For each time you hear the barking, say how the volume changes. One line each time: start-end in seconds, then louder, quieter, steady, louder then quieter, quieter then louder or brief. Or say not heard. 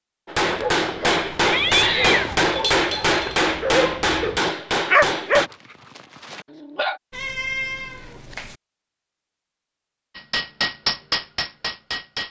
0.4-7.0 louder then quieter.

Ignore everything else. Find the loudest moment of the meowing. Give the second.
2 s.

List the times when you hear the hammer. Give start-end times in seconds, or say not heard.
0.2-5.5, 10.2-12.2.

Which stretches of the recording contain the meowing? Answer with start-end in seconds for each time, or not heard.
1.4-2.4, 7.1-8.6.